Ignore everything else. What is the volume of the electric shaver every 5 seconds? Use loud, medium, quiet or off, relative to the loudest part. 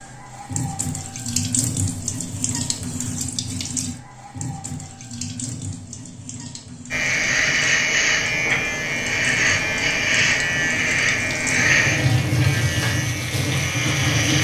off, loud, loud.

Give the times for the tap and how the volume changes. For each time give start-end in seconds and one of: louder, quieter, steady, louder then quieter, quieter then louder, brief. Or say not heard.
0.0-14.3 quieter then louder.